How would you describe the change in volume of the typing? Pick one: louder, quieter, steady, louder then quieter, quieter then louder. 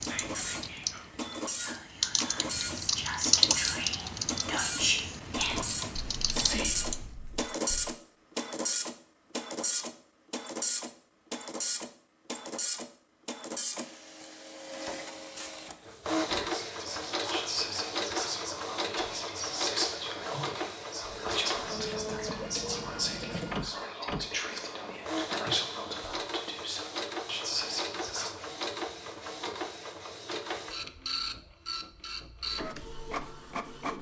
louder then quieter.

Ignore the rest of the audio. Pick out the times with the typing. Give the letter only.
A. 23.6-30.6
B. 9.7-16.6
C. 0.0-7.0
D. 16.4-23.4
C.